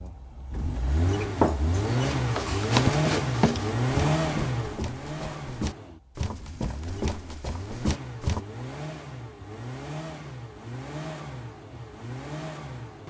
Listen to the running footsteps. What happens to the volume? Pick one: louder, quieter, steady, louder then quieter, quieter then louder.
quieter then louder.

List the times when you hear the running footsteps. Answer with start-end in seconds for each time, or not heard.
1.2-8.4.